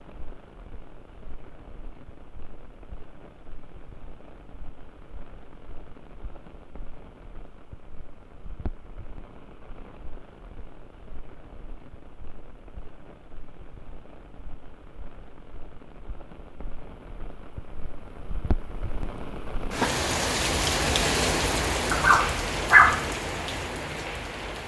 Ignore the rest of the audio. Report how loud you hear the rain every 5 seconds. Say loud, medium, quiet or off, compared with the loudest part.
quiet, quiet, quiet, medium, loud.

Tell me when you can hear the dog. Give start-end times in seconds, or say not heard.
21.9-23.1.